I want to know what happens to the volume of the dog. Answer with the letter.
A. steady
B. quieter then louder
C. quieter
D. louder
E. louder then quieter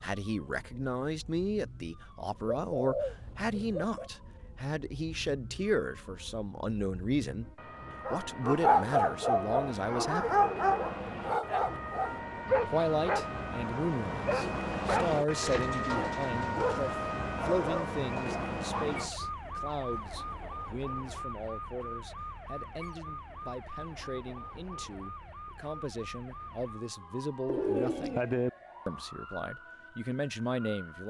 C.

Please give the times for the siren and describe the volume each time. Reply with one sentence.
You can hear the siren from 0.0 to 31.0 s, getting louder then quieter.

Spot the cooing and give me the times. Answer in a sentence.
You can hear the cooing from 2.5 to 4.1 s, from 15.1 to 16.4 s and from 27.4 to 28.5 s.